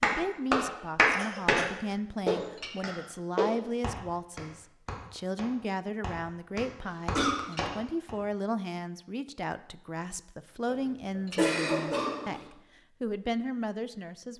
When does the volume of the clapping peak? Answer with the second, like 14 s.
1 s.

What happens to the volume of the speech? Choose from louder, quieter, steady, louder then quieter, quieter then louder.
steady.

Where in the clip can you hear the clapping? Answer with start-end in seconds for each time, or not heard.
0.0-1.6, 2.2-8.2.